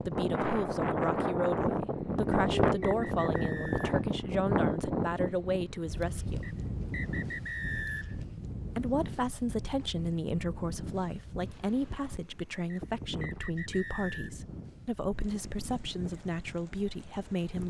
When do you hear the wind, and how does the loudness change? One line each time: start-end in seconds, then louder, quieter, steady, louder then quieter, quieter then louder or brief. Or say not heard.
0.0-17.6 quieter.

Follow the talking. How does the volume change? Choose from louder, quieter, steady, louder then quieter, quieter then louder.
steady.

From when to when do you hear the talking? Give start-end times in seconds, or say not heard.
0.0-6.5, 8.8-17.6.